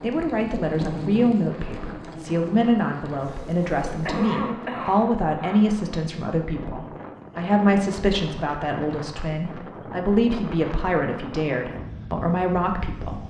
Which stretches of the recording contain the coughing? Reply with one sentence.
You can hear the coughing from 3.9 to 5.7 s.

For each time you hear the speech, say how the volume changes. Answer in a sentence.
The speech can be heard from 0.0 to 13.2 s, at a steady volume.